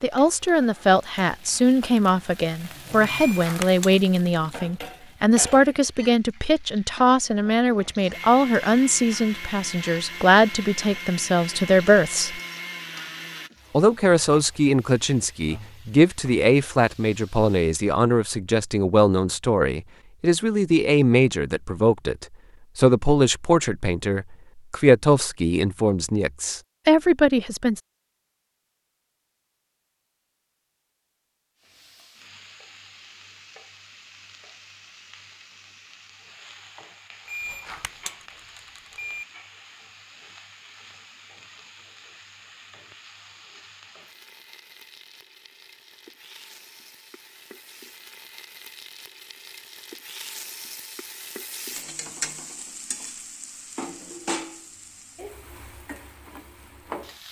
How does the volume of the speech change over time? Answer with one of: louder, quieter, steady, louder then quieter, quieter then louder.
steady.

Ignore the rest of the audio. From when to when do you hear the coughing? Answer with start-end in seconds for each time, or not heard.
not heard.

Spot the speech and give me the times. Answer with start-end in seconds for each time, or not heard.
0.0-12.4, 13.7-27.8.